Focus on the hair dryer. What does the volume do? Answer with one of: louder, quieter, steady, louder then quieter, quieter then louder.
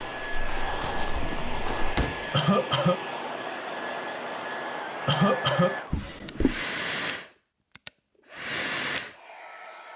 steady.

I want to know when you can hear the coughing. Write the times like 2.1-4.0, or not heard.
2.3-3.0, 5.0-5.8.